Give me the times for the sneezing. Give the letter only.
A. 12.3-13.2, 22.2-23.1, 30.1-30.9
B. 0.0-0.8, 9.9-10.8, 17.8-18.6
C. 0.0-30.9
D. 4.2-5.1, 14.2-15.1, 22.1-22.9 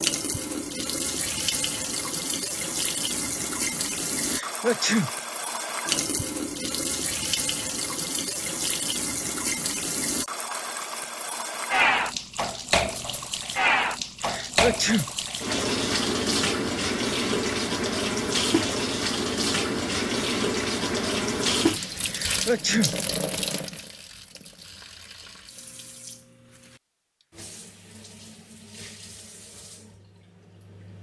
D.